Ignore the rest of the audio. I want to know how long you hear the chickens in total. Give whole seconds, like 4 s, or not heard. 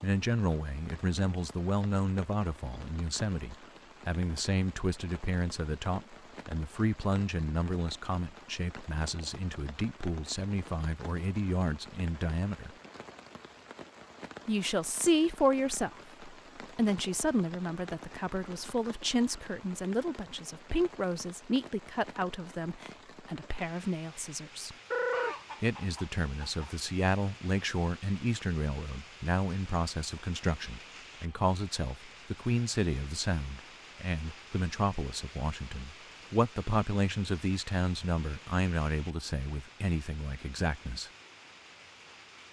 2 s.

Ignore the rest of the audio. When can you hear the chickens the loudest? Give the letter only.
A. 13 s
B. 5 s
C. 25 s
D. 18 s
C.